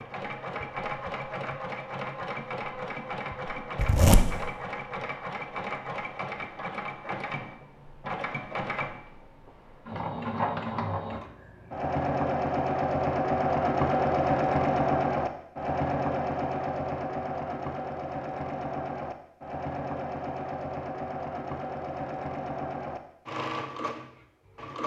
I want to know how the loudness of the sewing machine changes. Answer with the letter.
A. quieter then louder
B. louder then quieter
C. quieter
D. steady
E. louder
B.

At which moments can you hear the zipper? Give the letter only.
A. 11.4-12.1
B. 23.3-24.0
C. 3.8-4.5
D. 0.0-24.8
C.